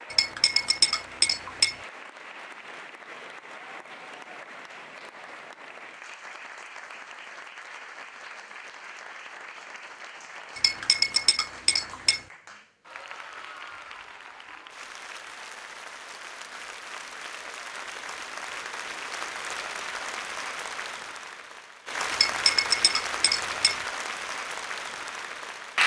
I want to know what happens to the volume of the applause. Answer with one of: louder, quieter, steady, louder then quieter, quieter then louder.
louder.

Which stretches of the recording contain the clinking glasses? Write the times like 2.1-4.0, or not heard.
0.1-1.8, 10.6-12.2, 22.1-23.8.